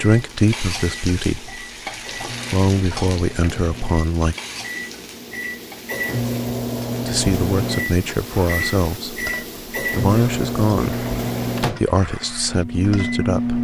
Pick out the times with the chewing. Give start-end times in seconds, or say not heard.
not heard.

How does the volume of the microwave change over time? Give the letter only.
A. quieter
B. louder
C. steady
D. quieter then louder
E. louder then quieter
B.